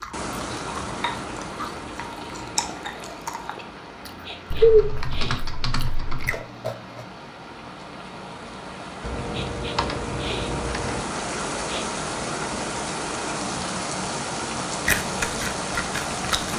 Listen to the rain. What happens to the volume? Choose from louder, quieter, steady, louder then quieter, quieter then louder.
quieter then louder.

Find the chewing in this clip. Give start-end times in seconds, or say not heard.
0.0-4.8, 5.8-7.0, 14.8-16.5.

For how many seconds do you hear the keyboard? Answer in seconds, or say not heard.
4 s.